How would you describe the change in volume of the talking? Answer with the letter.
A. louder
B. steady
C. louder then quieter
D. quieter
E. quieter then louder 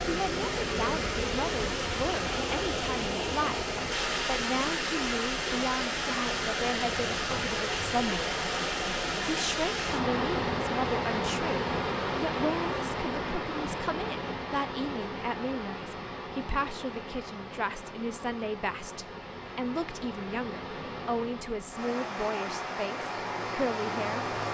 B.